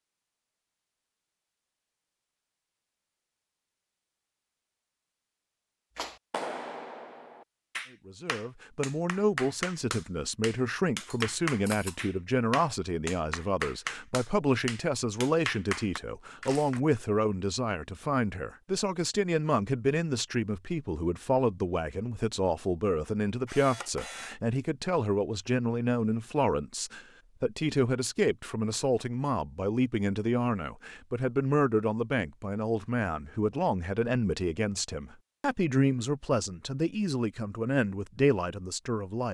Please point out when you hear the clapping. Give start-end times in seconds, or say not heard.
6.0-16.8.